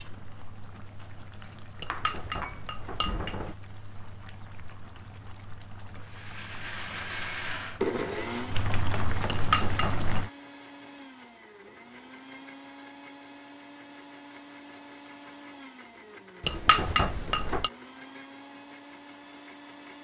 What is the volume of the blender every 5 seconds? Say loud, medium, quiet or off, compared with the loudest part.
off, loud, quiet, quiet.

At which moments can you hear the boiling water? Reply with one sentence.
The boiling water can be heard from 0.0 to 10.3 s.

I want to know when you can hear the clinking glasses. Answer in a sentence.
The clinking glasses can be heard from 1.8 to 3.5 s, from 9.3 to 10.1 s and from 16.4 to 17.7 s.